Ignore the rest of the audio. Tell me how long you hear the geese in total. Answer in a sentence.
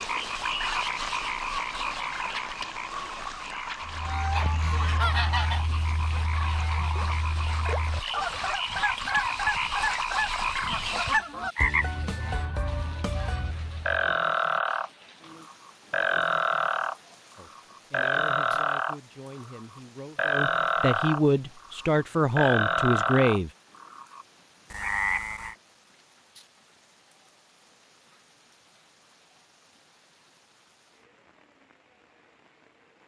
The geese can be heard for 10 seconds in total.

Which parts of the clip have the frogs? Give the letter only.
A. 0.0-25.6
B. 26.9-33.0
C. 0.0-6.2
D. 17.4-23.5
A.